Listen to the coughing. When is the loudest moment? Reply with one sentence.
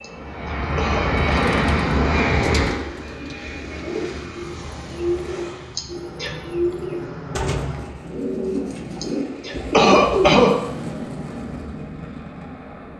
The loudest moment of the coughing is at 10 seconds.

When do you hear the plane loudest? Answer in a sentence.
The loudest moment of the plane is at 2 seconds.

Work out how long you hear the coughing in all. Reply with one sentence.
The coughing can be heard for 4 seconds in total.